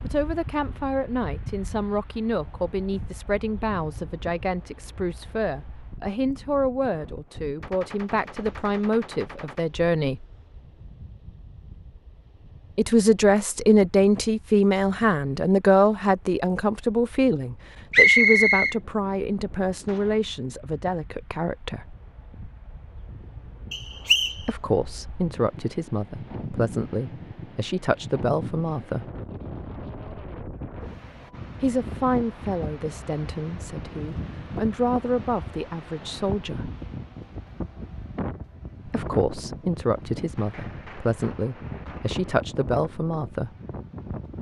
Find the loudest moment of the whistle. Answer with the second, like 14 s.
18 s.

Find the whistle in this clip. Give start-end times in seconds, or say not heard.
17.9-18.8, 23.7-24.4.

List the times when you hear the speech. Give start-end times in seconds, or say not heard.
0.0-10.2, 12.8-21.9, 24.4-29.1, 31.6-36.7, 38.9-43.5.